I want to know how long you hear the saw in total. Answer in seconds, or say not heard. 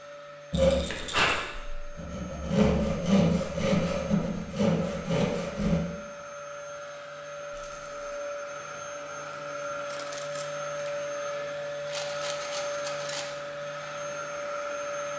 5 s.